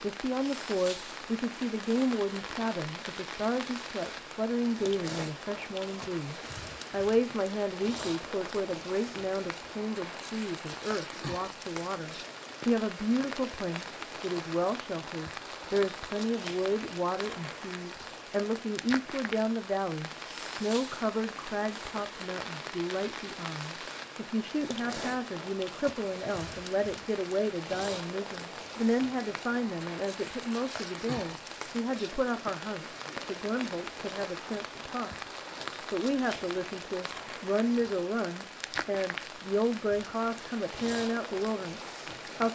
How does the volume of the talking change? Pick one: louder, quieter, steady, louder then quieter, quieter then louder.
steady.